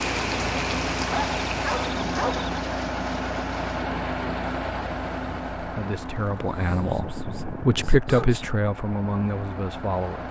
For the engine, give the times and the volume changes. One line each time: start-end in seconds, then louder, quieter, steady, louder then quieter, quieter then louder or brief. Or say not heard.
0.0-10.2 quieter.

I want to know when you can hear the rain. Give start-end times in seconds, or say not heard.
0.0-5.6.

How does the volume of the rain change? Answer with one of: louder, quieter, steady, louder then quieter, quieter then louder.
quieter.